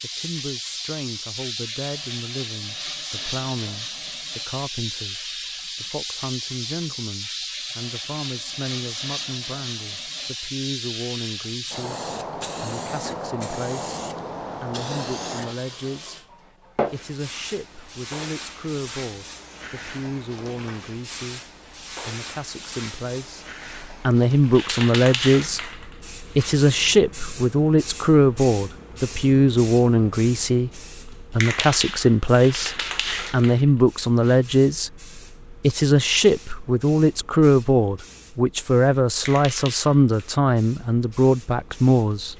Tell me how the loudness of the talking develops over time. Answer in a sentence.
The loudness of the talking goes up.